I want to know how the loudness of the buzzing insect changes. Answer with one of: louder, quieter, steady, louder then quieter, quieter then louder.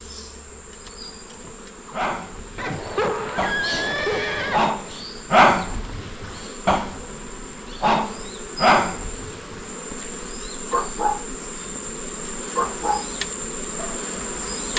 louder.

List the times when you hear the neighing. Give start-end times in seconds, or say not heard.
2.5-4.6.